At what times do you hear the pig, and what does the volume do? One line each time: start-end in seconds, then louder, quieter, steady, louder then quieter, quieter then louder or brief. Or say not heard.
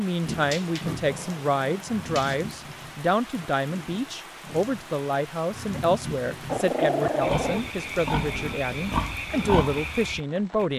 0.2-10.7 quieter then louder.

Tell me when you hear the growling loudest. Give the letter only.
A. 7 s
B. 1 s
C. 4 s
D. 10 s
A.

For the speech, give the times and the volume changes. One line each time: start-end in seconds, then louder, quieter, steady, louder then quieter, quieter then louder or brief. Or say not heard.
0.0-10.7 steady.